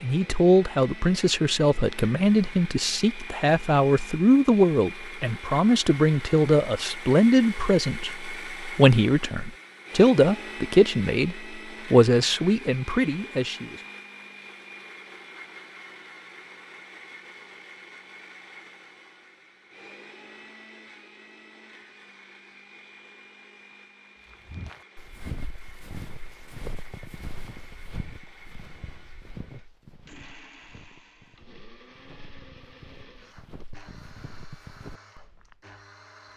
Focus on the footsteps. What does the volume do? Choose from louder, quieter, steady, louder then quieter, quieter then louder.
quieter then louder.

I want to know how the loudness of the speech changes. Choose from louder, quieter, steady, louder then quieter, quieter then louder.
steady.